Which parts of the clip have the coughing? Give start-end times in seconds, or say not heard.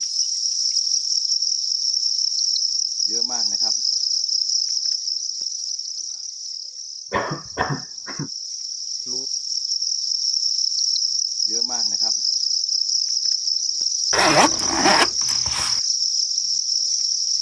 7.1-8.3.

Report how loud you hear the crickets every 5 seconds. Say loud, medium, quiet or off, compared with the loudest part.
loud, medium, loud, loud.